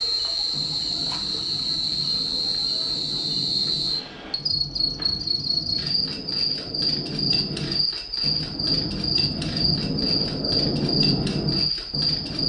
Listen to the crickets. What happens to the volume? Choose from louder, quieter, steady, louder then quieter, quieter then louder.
steady.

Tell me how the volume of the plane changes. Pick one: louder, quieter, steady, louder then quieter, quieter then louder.
louder.